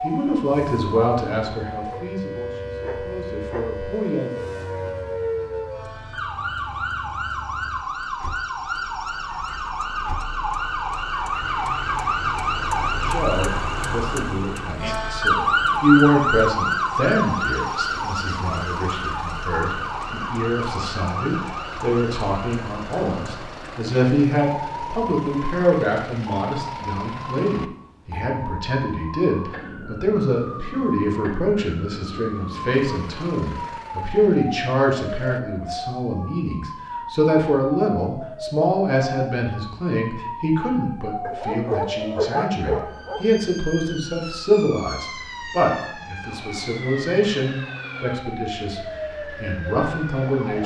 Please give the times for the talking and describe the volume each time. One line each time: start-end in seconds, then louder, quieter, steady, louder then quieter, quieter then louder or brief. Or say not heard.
0.0-4.5 quieter then louder
13.0-50.6 steady.